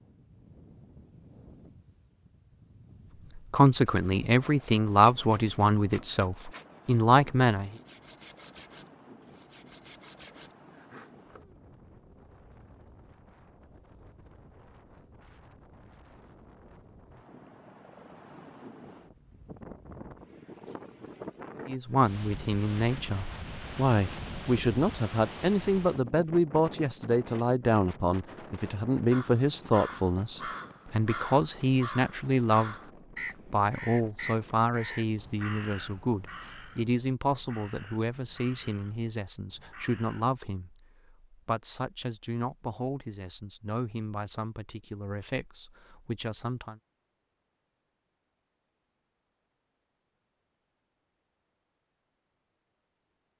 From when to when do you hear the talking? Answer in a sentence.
You can hear the talking from 3.4 to 7.8 s, from 21.6 to 32.8 s and from 33.5 to 46.8 s.